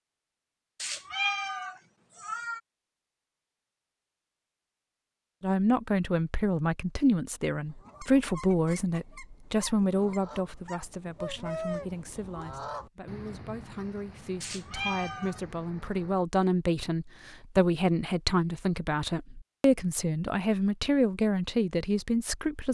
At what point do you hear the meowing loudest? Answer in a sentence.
The loudest moment of the meowing is at 1 second.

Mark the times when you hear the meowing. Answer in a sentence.
The meowing can be heard from 0.8 to 2.6 s and from 14.4 to 15.4 s.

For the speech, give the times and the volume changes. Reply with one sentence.
The speech can be heard from 5.4 to 22.6 s, getting quieter then louder.